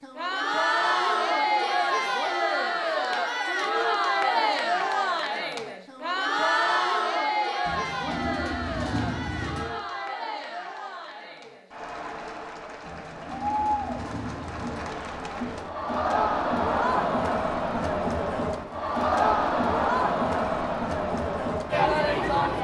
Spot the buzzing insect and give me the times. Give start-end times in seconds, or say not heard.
not heard.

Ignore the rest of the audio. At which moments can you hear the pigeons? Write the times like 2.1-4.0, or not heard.
7.7-9.7, 12.8-14.8.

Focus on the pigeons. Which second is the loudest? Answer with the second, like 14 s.
9 s.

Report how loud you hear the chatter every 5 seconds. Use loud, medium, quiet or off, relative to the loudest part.
loud, loud, medium, loud, loud.